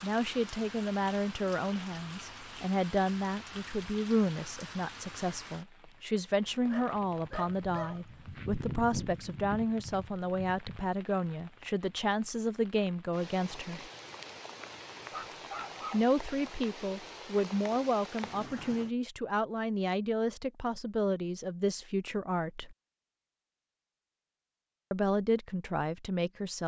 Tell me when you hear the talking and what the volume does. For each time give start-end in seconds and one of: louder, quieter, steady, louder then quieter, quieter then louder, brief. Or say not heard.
0.0-13.8 steady
15.9-22.8 steady
24.9-26.6 brief.